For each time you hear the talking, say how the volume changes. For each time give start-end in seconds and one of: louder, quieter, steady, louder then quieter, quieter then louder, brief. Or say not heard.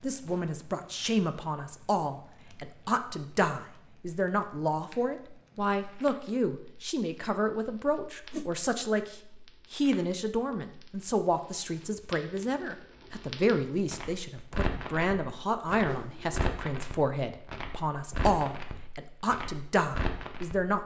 0.0-20.8 steady.